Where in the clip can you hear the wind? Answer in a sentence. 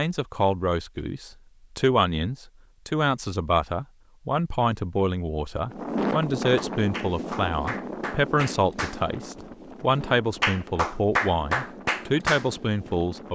You can hear the wind from 5.7 to 13.2 s.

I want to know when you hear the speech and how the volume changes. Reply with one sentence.
You can hear the speech from 0.0 to 13.2 s, at a steady volume.